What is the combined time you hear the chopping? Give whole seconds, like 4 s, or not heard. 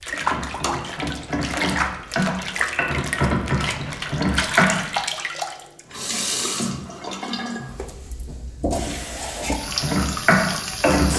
6 s.